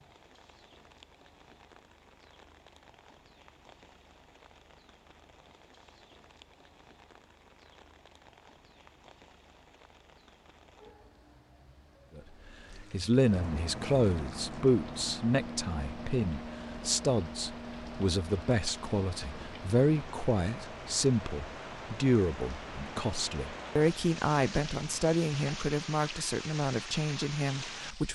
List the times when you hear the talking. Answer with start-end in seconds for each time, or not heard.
12.2-28.0.